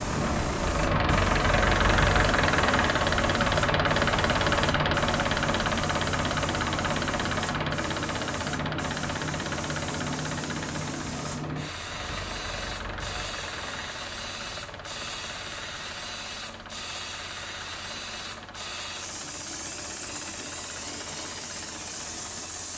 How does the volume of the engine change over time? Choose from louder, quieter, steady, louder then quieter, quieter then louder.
quieter.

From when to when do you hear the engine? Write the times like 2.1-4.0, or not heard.
0.0-22.7.